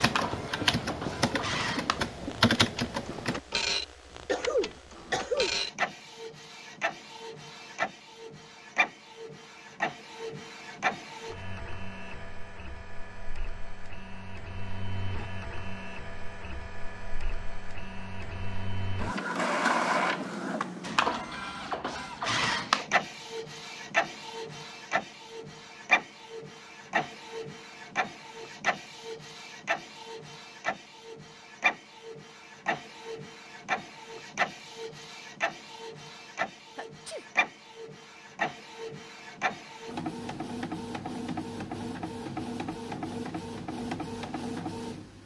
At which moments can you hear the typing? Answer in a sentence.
The typing can be heard from 0.0 to 3.4 s.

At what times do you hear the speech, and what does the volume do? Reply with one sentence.
The speech can't be heard in this clip.